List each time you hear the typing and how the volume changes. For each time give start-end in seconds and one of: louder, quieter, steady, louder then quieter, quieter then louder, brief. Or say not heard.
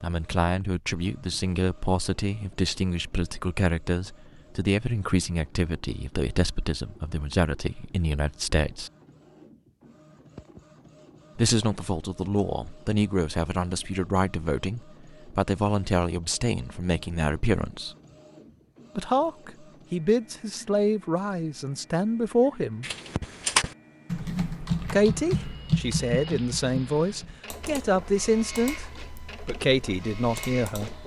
22.8-31.0 quieter.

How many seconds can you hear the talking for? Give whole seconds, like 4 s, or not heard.
25 s.